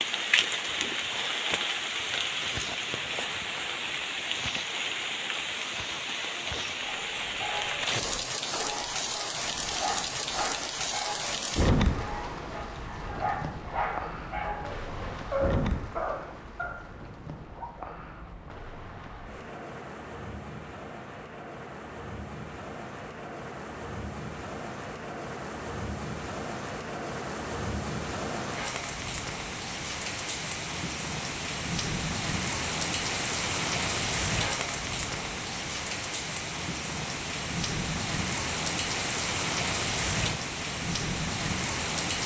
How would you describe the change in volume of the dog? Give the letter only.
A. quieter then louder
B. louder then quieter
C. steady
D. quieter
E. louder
E.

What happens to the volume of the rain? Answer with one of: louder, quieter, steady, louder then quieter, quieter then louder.
quieter then louder.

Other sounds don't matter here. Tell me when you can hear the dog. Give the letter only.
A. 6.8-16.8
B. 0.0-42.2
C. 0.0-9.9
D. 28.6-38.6
A.